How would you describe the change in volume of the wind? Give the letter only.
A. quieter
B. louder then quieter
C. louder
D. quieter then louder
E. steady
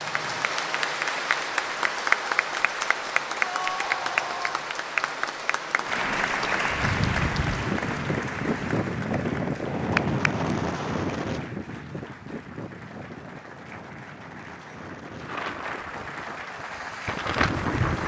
D.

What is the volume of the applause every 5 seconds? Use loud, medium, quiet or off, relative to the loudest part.
loud, loud, quiet, medium.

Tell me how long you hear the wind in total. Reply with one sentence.
You can hear the wind for 11 seconds altogether.